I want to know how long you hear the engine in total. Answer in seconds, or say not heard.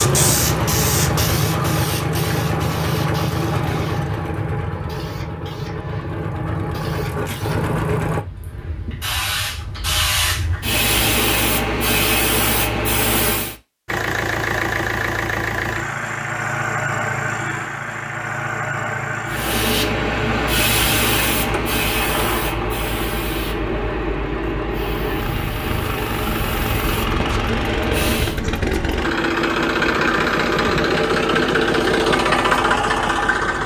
28 s.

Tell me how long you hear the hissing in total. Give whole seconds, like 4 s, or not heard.
23 s.